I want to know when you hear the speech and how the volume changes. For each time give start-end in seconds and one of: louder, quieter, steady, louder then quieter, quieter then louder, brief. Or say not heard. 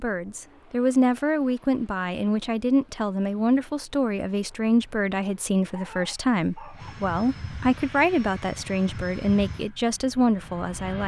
0.0-11.0 steady.